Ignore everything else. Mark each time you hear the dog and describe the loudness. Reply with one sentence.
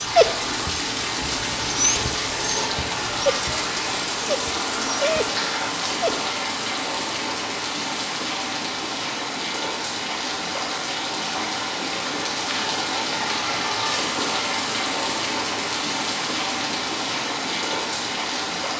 The dog can be heard from 0.0 to 6.2 s, getting louder.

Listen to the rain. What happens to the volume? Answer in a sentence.
The volume of the rain stays about the same.